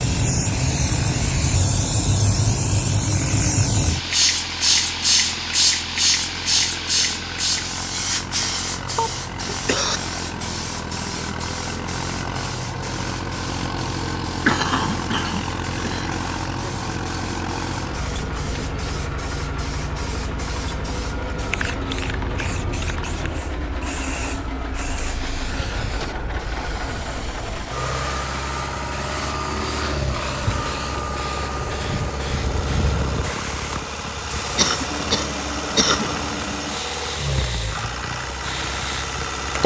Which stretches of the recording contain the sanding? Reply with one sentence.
The sanding can't be heard in this clip.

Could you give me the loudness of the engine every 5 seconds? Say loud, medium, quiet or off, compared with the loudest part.
medium, medium, loud, loud, loud, loud, loud, loud.